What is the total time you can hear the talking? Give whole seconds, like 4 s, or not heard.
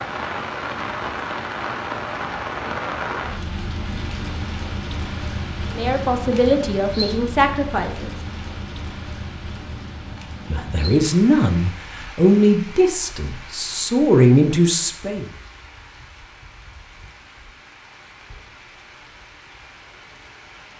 7 s.